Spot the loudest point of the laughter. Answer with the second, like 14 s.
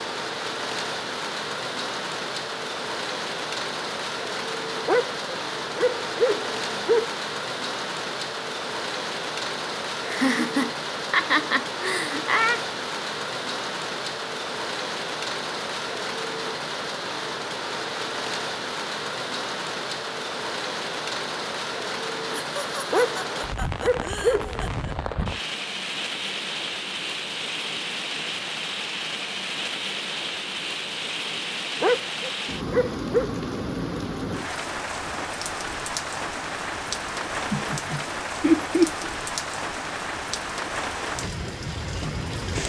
39 s.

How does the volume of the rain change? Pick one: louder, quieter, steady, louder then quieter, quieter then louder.
steady.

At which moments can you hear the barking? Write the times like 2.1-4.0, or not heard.
4.8-7.1, 22.9-24.7, 31.8-33.3.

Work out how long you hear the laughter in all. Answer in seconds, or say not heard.
7 s.